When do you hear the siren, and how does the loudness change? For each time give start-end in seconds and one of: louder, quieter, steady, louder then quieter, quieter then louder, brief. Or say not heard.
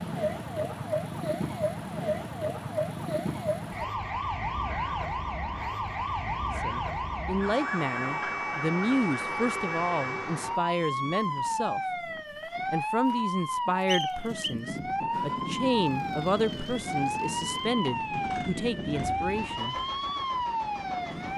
0.0-21.3 steady.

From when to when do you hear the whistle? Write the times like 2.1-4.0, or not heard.
13.8-14.6.